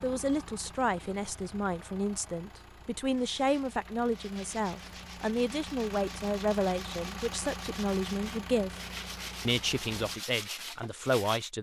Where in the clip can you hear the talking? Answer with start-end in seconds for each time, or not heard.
0.0-8.8, 9.4-11.5.